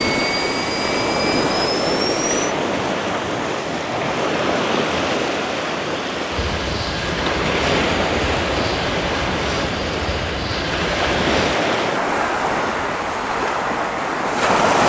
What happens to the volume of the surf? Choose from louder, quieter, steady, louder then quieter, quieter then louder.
steady.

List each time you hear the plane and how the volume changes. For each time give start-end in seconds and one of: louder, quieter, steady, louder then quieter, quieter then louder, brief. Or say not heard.
0.0-2.5 brief
6.3-14.8 steady.